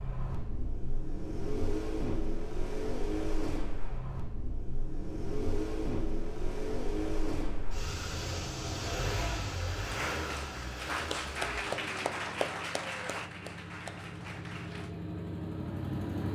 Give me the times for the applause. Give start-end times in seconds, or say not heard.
9.8-14.9.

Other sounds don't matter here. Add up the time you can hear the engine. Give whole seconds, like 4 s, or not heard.
16 s.